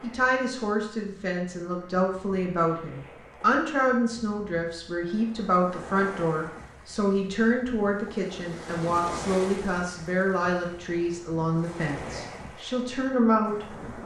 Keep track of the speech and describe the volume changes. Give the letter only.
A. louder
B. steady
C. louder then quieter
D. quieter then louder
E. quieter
B.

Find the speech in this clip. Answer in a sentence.
You can hear the speech from 0.0 to 14.0 s.